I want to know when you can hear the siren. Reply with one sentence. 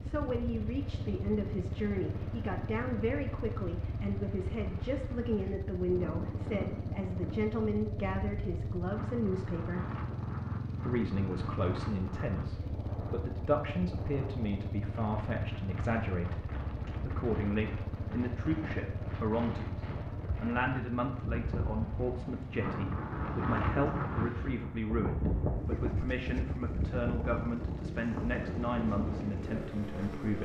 The siren can't be heard in this clip.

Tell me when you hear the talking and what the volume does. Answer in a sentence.
You can hear the talking from 0.0 to 9.9 s, at a steady volume; and from 10.8 to 30.4 s, at a steady volume.